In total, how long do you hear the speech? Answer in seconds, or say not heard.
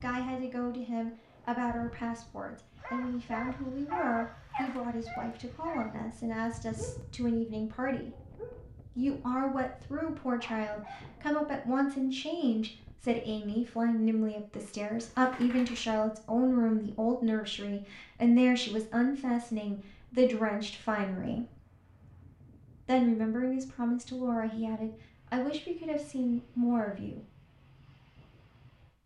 25 s.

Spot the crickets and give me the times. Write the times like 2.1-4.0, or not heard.
not heard.